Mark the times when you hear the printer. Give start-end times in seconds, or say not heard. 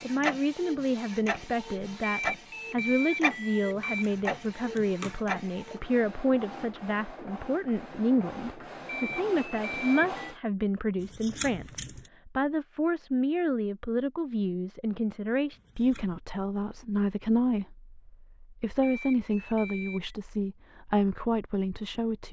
0.0-10.3.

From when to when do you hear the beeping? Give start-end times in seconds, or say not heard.
2.0-4.0, 8.8-10.3, 18.8-20.1.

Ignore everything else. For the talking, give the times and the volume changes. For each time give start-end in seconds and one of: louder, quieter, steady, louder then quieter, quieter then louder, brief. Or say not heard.
0.0-22.2 steady.